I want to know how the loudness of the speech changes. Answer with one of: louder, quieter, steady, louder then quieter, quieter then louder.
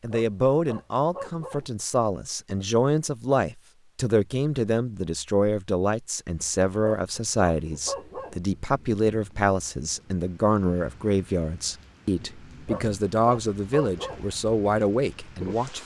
steady.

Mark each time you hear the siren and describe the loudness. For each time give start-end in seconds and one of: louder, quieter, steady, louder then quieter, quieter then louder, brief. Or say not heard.
not heard.